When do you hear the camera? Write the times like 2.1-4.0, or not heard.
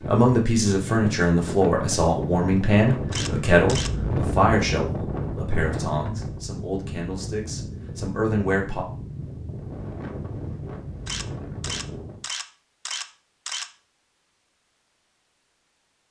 3.1-3.9, 11.1-13.7.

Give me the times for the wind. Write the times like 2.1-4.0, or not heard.
0.0-12.2.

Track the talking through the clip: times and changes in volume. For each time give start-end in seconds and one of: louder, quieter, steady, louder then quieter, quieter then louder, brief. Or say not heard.
0.1-8.8 quieter.